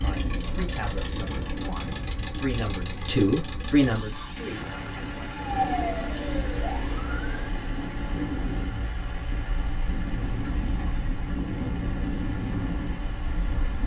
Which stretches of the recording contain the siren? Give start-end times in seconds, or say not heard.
5.3-7.7.